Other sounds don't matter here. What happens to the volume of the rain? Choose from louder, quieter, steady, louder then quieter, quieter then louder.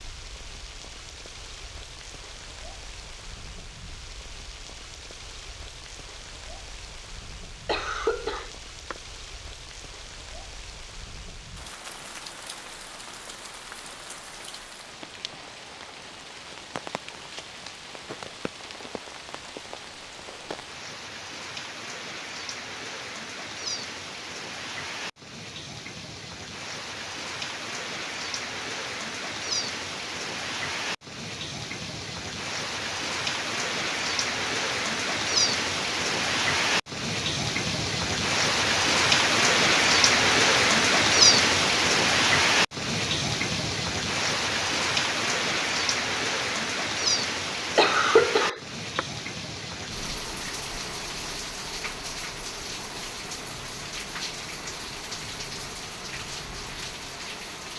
louder then quieter.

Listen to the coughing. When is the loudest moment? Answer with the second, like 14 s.
48 s.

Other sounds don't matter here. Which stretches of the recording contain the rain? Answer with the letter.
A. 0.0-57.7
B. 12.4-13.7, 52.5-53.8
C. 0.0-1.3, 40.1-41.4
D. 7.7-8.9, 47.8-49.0
A.